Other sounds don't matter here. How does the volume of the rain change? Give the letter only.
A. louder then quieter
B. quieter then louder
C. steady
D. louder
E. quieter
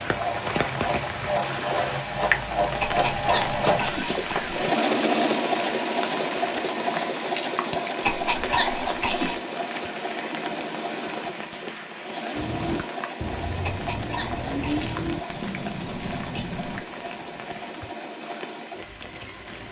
E.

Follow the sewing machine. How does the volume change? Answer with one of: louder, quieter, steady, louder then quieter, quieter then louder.
quieter.